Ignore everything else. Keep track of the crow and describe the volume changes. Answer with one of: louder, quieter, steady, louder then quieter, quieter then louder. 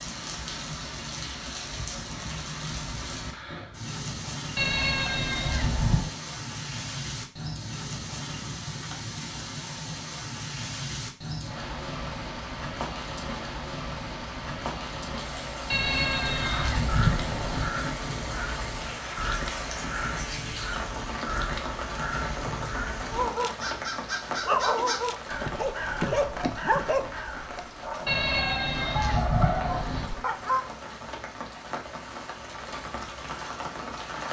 steady.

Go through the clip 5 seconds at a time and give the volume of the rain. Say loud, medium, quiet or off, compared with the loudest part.
loud, loud, loud, loud, loud, medium, loud.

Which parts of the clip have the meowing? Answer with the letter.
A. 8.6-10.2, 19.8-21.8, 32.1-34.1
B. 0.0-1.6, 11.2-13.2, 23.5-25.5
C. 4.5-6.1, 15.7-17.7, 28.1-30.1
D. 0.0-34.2
C.